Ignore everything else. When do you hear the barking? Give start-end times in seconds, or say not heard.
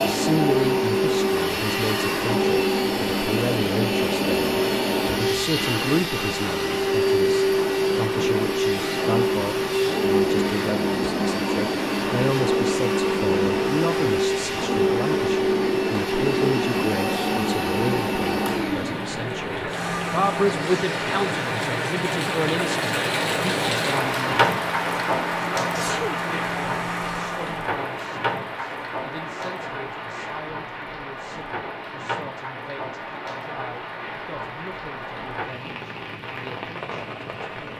not heard.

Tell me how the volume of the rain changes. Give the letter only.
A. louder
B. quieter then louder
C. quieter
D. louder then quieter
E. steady
D.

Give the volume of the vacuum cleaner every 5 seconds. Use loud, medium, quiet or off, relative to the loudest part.
loud, loud, loud, loud, medium, medium, off, off.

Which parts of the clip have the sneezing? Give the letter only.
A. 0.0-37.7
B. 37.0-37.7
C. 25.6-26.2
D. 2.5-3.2
C.